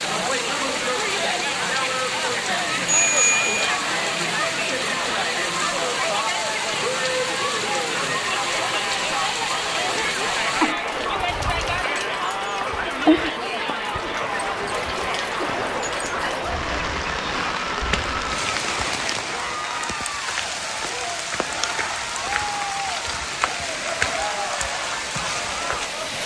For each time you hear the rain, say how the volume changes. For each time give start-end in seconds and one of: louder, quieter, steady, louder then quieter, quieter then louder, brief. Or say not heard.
0.0-26.2 steady.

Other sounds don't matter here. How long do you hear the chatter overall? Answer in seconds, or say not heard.
26 s.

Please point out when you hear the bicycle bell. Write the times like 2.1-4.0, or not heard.
2.9-3.7.